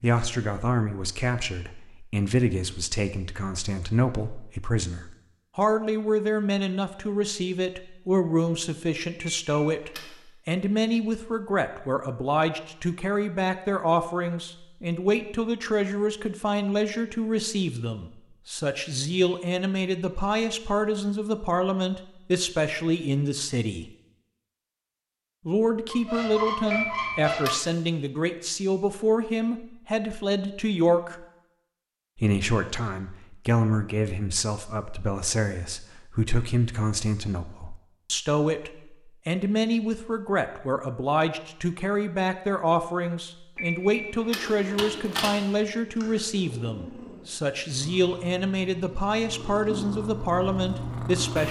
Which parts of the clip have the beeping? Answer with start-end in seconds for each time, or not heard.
9.2-10.1, 26.7-27.5, 43.5-45.4.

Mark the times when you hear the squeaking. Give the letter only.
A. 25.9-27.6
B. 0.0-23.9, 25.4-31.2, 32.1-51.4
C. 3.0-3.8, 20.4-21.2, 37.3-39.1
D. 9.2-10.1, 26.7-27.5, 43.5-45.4
A.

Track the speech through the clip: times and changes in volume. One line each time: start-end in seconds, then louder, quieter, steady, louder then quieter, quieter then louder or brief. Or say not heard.
0.0-23.9 steady
25.4-31.2 steady
32.1-51.4 steady.